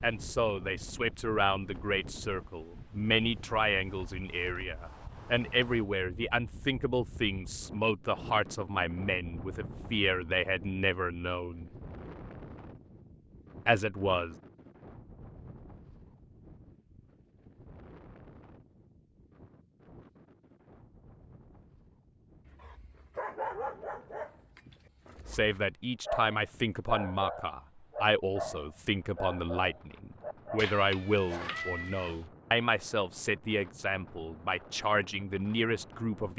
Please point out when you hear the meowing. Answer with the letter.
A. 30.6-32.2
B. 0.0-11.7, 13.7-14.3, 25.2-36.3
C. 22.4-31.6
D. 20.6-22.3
A.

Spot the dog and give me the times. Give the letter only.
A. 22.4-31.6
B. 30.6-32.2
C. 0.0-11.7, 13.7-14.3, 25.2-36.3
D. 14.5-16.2
A.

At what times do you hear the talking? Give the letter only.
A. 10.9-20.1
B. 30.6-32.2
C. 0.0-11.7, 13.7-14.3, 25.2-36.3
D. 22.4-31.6
C.